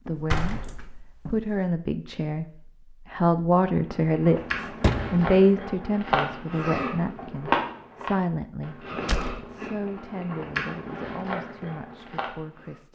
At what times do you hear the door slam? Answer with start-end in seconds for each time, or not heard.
0.1-1.5, 4.3-5.3, 9.1-9.5.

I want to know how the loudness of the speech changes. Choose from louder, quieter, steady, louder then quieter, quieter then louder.
louder then quieter.